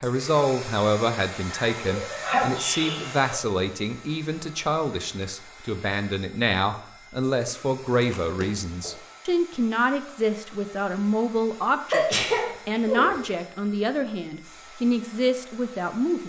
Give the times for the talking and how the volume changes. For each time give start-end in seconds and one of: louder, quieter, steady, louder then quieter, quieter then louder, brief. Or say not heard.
0.0-16.2 steady.